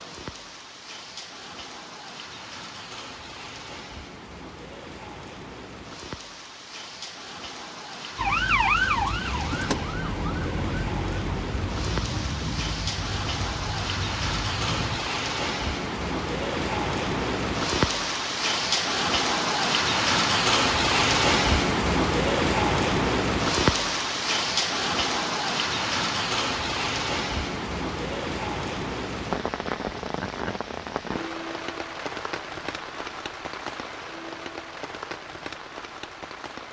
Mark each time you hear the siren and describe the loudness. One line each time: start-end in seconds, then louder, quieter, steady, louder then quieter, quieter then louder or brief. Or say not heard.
8.2-15.1 quieter.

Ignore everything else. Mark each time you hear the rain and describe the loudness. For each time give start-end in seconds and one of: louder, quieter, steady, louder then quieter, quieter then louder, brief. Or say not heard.
0.0-36.6 louder then quieter.